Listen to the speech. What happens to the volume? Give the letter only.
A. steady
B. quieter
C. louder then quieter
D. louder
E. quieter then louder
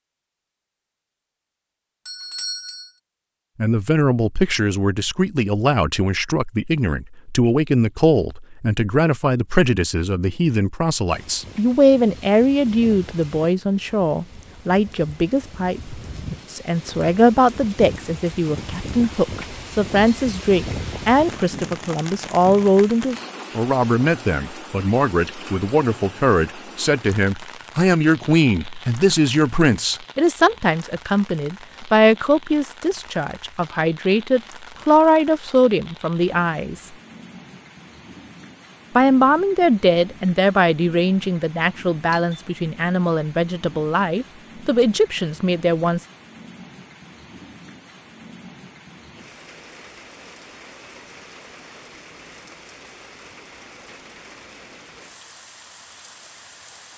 A.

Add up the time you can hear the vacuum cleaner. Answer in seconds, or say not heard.
not heard.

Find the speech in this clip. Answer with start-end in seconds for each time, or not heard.
3.5-36.9, 39.0-46.0.